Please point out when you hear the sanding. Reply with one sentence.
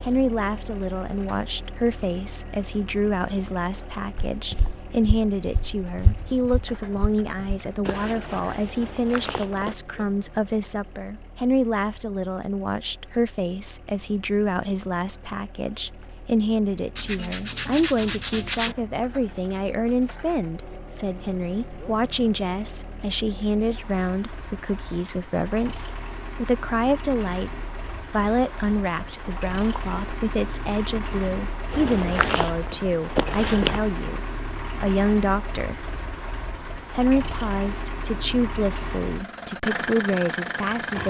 The sanding can be heard from 16.9 to 18.8 s.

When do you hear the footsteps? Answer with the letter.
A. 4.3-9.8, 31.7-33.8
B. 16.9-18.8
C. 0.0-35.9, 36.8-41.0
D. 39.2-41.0
A.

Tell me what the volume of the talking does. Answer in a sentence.
The loudness of the talking stays about the same.